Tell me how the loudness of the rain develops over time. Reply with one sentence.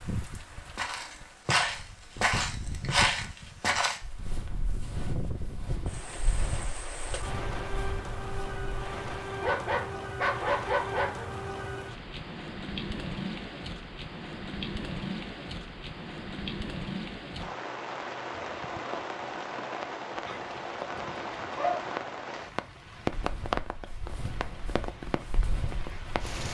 The loudness of the rain goes up.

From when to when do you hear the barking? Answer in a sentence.
The barking can be heard from 9.4 to 11.2 s and from 20.2 to 21.8 s.